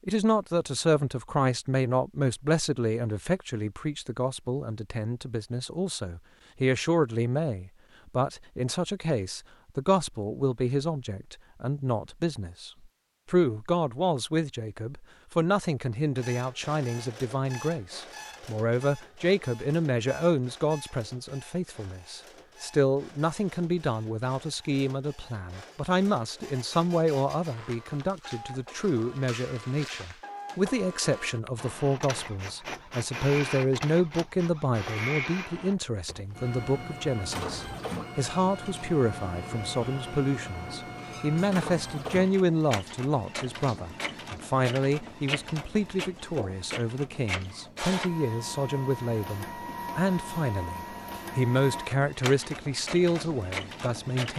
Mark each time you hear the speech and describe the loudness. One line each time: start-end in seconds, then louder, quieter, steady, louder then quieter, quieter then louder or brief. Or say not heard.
0.1-54.3 steady.